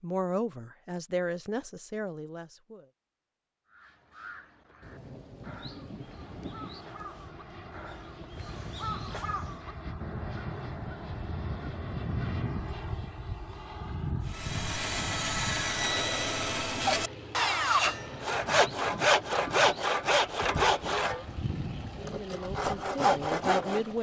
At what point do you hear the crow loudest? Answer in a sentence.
The volume of the crow peaks at 9 seconds.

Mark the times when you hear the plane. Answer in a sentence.
You can hear the plane from 6.0 to 23.9 s.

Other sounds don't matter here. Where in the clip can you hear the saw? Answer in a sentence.
You can hear the saw from 14.2 to 23.9 s.